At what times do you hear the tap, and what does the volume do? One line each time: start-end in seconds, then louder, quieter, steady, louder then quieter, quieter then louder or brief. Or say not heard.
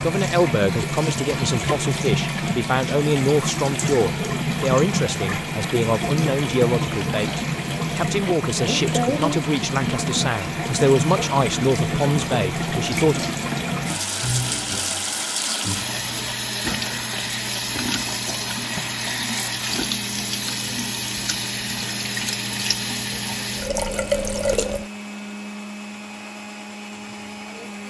0.0-24.9 steady.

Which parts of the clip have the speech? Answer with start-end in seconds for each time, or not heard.
0.0-13.2.